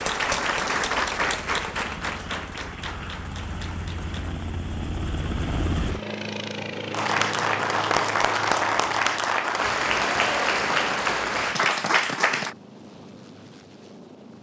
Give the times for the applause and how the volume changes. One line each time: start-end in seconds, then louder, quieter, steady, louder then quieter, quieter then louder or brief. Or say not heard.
0.0-4.5 quieter
6.9-12.6 steady.